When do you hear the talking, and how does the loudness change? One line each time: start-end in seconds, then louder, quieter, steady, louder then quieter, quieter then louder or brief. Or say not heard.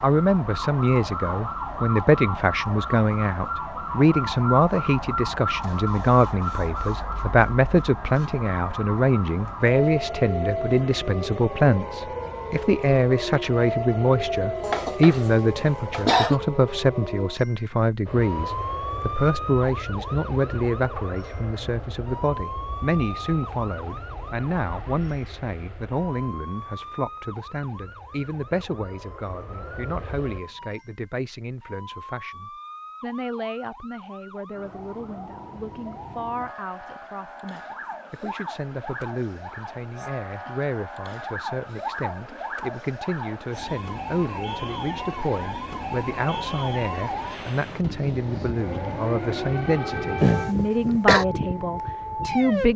0.0-52.7 quieter then louder.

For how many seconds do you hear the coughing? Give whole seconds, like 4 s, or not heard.
2 s.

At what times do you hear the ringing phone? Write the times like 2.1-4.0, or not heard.
not heard.